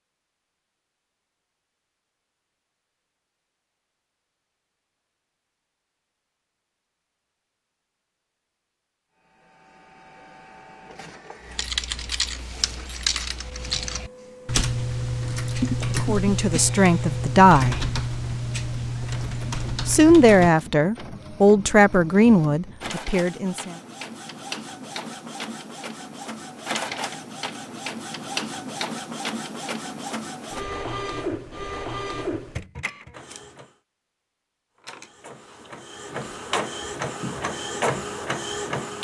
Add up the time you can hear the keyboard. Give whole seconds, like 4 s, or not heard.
9 s.